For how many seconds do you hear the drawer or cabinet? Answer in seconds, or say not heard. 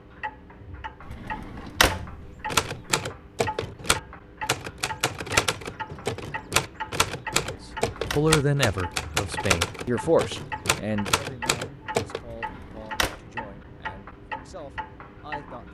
3 s.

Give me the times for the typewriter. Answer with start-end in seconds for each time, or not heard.
2.5-12.2.